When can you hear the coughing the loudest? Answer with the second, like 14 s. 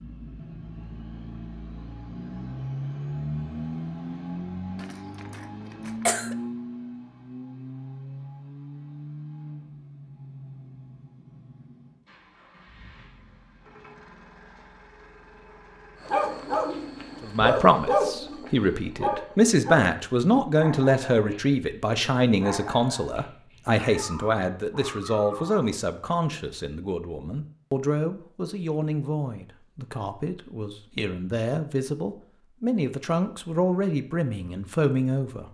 6 s.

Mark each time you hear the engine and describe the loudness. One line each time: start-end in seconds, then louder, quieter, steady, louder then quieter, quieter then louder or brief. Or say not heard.
0.0-17.4 quieter.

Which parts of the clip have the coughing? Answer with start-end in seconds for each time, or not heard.
4.8-6.3.